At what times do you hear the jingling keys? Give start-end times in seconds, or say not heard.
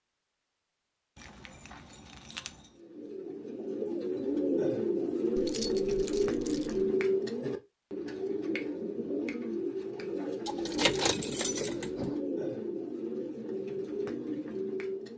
1.1-2.7, 5.3-6.9, 10.4-12.2.